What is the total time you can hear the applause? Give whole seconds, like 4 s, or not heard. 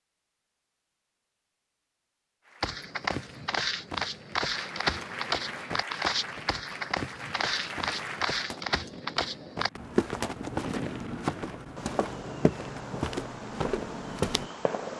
6 s.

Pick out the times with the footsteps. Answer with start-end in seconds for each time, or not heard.
2.6-14.5.